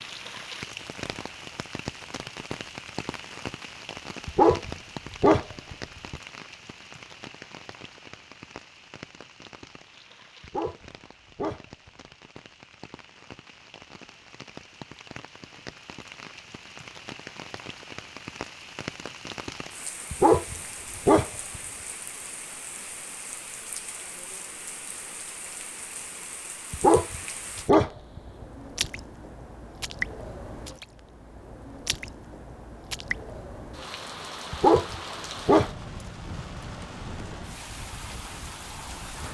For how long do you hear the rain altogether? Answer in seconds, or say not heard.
39 s.